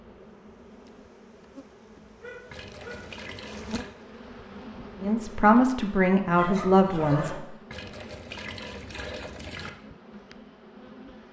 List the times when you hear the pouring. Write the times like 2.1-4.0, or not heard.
2.5-4.0, 7.7-9.7.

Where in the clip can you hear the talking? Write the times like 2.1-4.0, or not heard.
5.0-7.4.